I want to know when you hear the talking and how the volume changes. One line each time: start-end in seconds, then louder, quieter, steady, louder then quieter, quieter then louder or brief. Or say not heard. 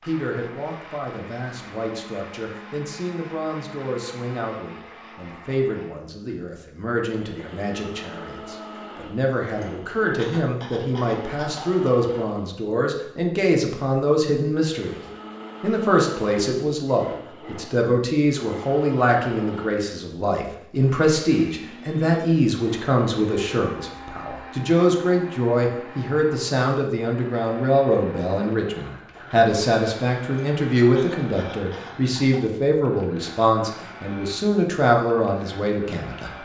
0.0-15.0 louder
15.6-36.4 steady.